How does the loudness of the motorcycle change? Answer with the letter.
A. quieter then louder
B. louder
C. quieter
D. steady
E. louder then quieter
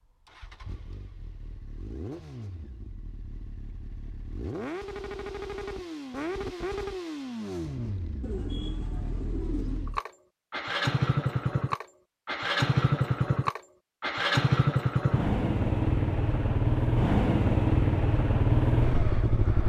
B.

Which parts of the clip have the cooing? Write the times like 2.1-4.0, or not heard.
8.2-9.9.